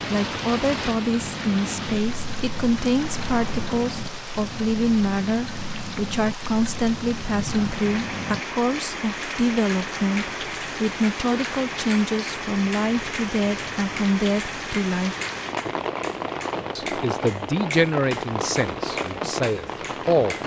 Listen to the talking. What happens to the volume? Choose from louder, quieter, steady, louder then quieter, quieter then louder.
steady.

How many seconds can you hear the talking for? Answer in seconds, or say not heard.
19 s.